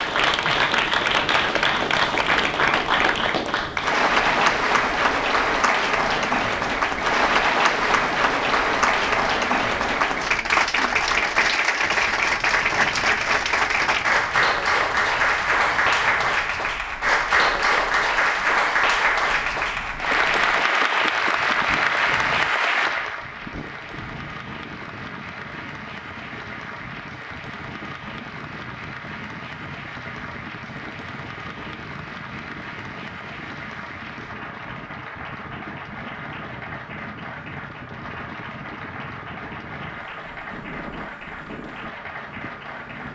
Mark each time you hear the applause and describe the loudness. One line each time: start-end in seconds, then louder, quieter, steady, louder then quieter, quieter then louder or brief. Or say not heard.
0.0-43.0 quieter.